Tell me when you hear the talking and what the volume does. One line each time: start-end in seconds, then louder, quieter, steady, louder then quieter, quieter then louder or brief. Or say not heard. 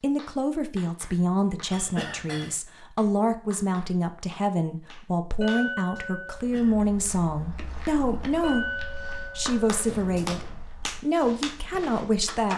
0.0-12.5 steady.